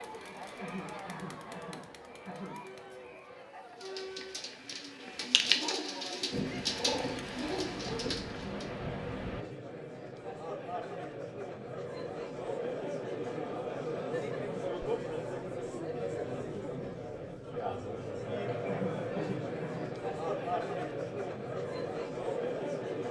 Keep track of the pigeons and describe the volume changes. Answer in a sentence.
The volume of the pigeons goes up, then down.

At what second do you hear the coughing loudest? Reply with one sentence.
The volume of the coughing peaks at 19 seconds.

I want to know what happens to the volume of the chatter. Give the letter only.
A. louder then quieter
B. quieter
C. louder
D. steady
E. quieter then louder
C.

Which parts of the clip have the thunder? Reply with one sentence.
You can hear the thunder from 6.3 to 9.4 s.